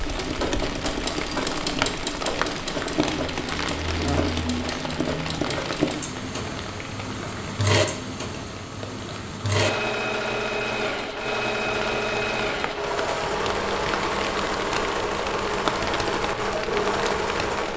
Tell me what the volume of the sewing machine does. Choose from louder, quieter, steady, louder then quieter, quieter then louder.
steady.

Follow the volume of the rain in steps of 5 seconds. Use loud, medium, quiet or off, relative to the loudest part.
loud, medium, loud, loud.